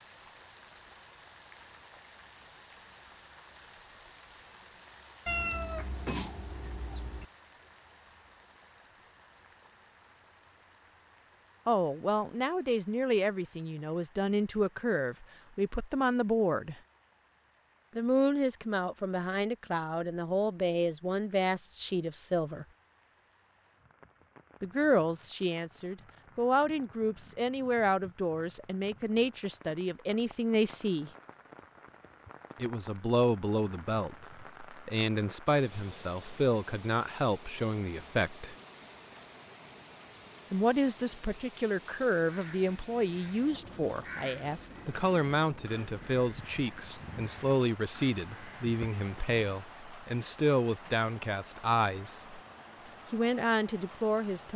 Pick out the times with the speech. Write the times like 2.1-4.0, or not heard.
11.7-16.8, 17.9-22.6, 24.6-31.1, 32.5-38.5, 40.5-52.4, 53.1-54.5.